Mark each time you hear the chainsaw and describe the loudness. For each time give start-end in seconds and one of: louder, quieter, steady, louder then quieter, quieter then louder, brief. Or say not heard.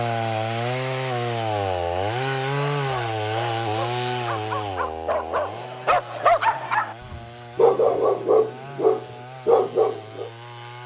0.0-10.8 quieter.